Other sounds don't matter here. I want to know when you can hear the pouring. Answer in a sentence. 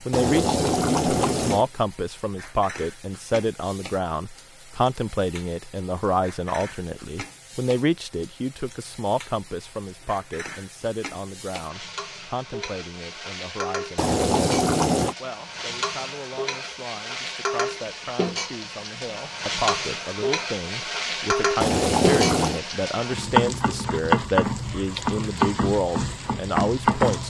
You can hear the pouring from 0.1 to 1.6 s, from 13.9 to 15.2 s and from 21.6 to 22.6 s.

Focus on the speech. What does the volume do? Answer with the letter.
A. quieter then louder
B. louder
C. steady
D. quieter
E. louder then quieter
A.